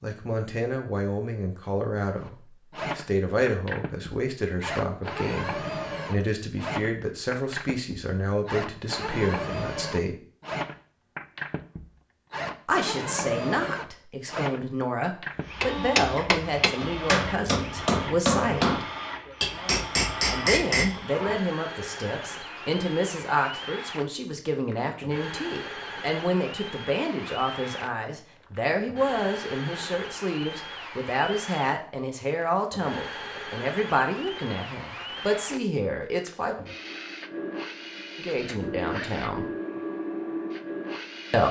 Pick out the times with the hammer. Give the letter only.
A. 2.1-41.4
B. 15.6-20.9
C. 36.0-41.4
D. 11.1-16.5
B.